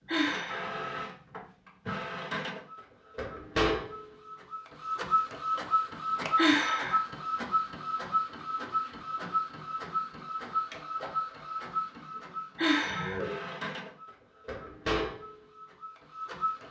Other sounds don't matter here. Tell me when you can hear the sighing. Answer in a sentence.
You can hear the sighing from 0.1 to 0.7 s, from 6.3 to 7.0 s and from 12.6 to 13.2 s.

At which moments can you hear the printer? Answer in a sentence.
You can hear the printer from 0.0 to 16.6 s.